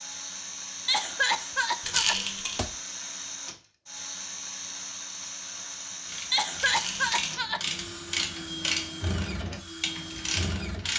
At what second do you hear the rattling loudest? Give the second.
2 s.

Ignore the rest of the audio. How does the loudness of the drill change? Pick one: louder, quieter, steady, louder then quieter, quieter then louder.
steady.